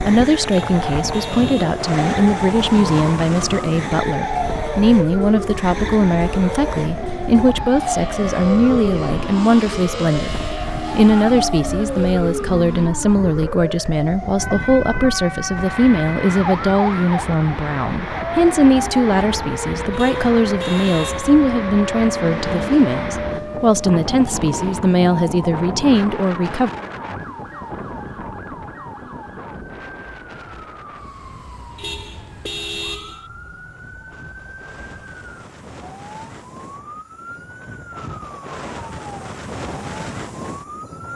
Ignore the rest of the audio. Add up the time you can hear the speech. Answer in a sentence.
You can hear the speech for 27 seconds altogether.